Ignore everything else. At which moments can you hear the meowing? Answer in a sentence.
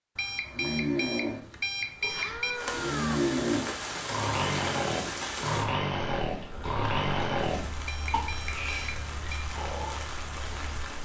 The meowing can be heard from 2.0 to 3.2 s.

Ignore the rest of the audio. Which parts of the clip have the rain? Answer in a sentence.
You can hear the rain from 2.5 to 11.0 s.